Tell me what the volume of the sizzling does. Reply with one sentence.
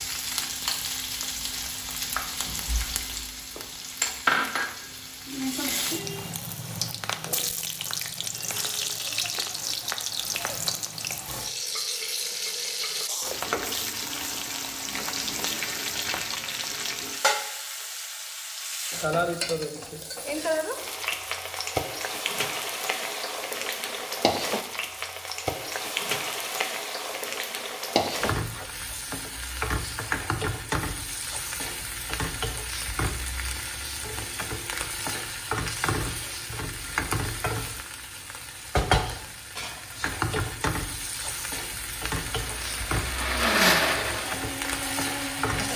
The loudness of the sizzling stays about the same.